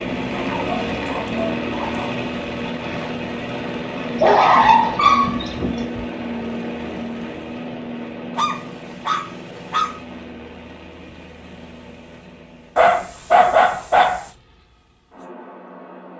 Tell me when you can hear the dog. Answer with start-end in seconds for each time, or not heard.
0.5-2.1, 4.2-6.0, 8.3-10.0, 12.8-14.3.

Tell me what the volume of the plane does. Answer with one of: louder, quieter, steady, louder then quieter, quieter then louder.
quieter.